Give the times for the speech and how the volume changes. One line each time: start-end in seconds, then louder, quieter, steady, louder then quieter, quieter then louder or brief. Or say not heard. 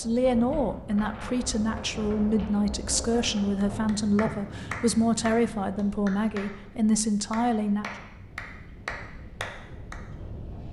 0.0-7.8 steady.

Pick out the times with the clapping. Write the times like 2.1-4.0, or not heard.
3.6-6.5, 7.3-9.9.